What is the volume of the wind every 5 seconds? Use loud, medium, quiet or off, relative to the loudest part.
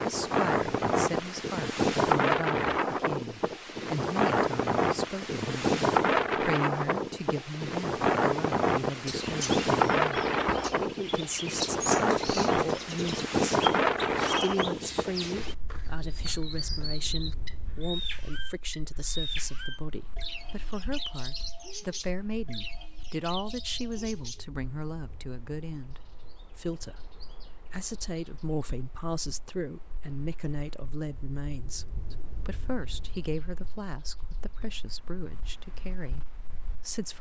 loud, loud, loud, quiet, quiet, quiet, quiet, quiet.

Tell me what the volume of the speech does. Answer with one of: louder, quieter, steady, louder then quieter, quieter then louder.
steady.